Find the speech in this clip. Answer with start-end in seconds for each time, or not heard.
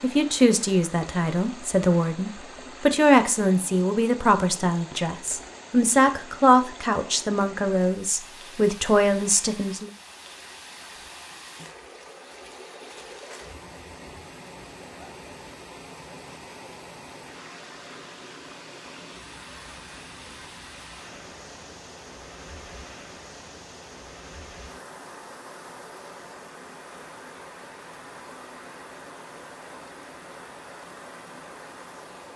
0.0-9.9.